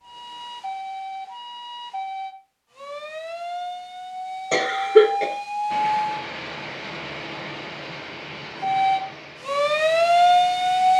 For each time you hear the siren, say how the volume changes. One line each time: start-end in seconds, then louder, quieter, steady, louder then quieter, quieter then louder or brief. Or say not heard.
0.0-6.2 louder
8.6-10.9 brief.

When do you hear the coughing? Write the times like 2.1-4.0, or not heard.
4.5-5.3.